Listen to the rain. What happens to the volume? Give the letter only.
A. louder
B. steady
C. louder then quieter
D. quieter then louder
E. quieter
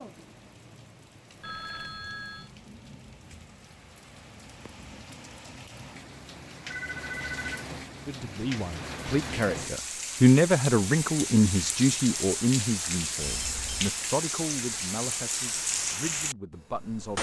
A.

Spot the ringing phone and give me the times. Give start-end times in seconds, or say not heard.
1.4-2.5, 6.7-7.7, 13.2-13.9.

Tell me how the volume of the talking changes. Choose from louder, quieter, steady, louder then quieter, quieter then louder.
louder then quieter.